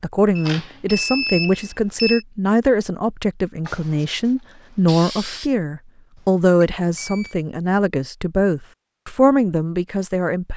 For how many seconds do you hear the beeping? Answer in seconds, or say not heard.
3 s.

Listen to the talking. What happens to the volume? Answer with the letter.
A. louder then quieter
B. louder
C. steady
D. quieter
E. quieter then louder
C.